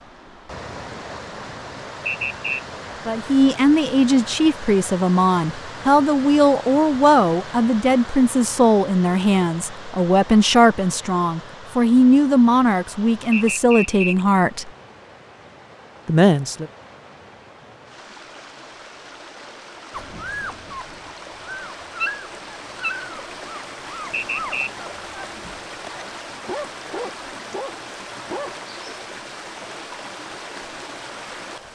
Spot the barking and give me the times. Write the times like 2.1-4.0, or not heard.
19.9-28.6.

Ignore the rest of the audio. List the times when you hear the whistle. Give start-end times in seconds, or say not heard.
2.0-2.6, 13.3-14.2, 24.1-24.7.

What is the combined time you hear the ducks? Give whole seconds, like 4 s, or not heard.
not heard.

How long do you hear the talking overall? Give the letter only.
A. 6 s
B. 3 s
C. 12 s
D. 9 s
C.